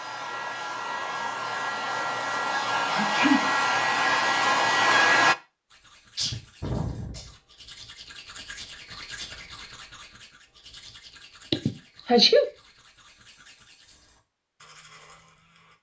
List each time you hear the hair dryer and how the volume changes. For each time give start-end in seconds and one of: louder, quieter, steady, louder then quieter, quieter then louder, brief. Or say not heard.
0.0-5.3 louder.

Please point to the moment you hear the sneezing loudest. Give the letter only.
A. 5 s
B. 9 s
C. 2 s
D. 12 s
D.